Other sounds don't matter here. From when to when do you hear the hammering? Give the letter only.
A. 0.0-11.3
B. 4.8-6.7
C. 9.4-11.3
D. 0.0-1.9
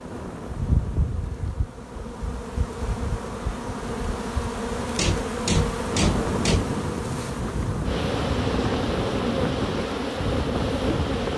B.